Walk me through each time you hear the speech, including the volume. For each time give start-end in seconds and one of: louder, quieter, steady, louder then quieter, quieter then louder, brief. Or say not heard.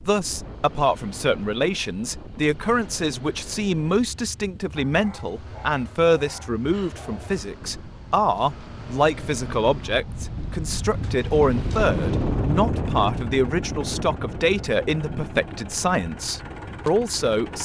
0.1-17.6 steady.